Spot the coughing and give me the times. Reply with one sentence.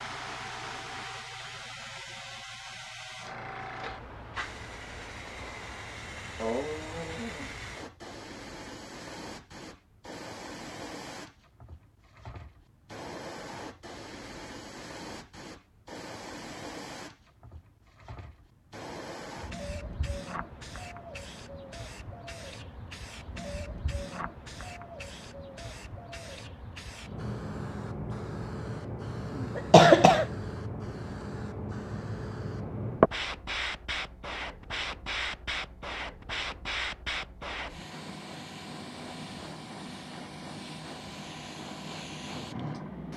The coughing can be heard from 29.6 to 30.2 s.